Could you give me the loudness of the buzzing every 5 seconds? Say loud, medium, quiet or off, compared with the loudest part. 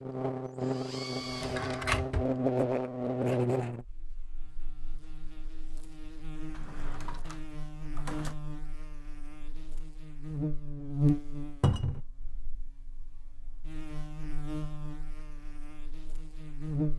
loud, quiet, loud, medium.